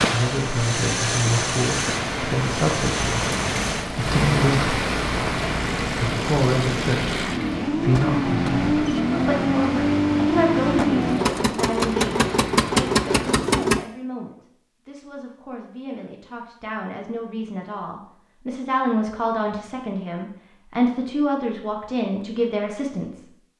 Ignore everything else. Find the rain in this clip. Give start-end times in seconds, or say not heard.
0.2-13.3.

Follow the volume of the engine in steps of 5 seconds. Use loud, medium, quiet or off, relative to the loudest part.
medium, loud, loud, off, off.